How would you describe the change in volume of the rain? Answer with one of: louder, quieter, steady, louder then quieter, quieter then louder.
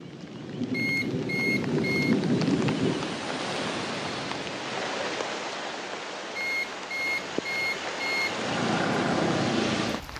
quieter then louder.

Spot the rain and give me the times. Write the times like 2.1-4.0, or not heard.
0.0-10.1.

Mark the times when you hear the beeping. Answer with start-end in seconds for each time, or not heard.
0.7-2.1, 6.3-8.3.